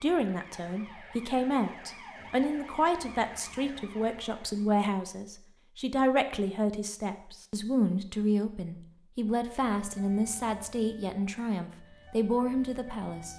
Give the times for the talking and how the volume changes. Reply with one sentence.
You can hear the talking from 0.0 to 13.3 s, at a steady volume.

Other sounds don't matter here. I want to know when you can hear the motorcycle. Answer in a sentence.
You can't hear the motorcycle here.